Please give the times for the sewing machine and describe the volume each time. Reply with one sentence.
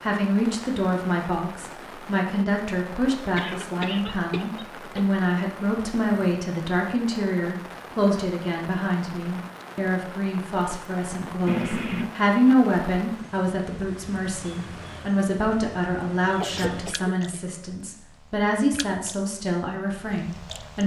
You can't hear the sewing machine here.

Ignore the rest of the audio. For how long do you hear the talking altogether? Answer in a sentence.
The talking can be heard for 21 seconds in total.